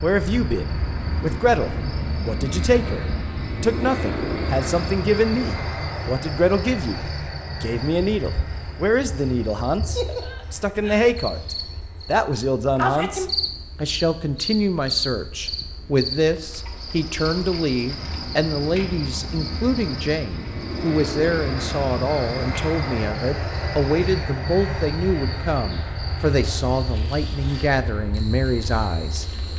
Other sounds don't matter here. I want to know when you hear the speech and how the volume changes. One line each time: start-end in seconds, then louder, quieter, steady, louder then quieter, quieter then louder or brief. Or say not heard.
0.0-29.2 steady.